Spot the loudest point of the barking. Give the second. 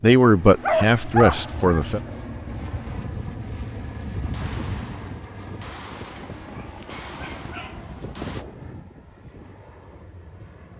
1 s.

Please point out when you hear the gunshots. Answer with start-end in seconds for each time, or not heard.
4.3-8.4.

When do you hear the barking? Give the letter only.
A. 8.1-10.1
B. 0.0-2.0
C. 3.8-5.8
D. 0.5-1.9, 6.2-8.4
D.